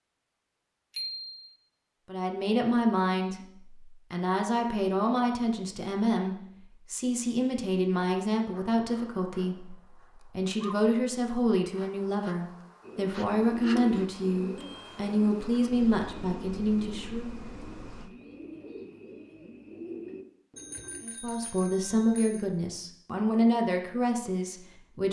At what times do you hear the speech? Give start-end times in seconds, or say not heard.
2.0-17.4, 21.0-25.0.